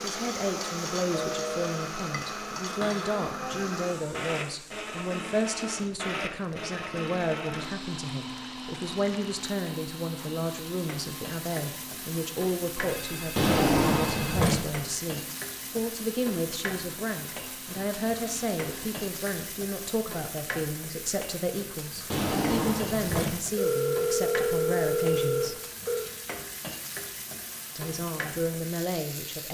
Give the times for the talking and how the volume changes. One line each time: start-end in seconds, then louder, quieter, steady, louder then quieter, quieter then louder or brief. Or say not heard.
0.0-25.6 steady
27.8-29.4 brief.